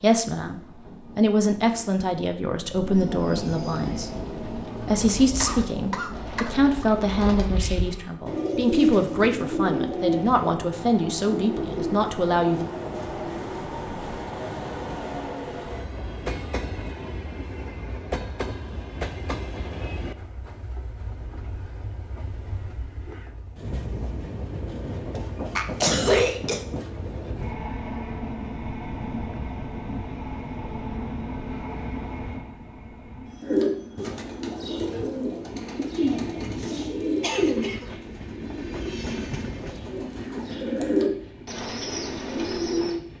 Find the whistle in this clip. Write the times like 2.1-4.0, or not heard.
not heard.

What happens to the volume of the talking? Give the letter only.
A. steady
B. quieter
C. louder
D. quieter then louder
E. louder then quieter
A.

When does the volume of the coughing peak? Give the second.
26 s.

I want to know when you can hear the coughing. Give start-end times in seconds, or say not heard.
5.4-6.8, 25.6-26.6, 36.4-37.9.